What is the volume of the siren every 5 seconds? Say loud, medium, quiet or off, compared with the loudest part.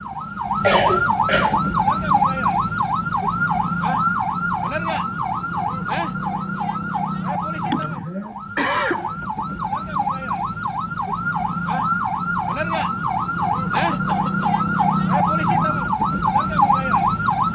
loud, medium, loud, loud.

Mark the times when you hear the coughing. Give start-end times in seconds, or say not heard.
0.6-1.6, 7.7-9.2, 13.7-14.7.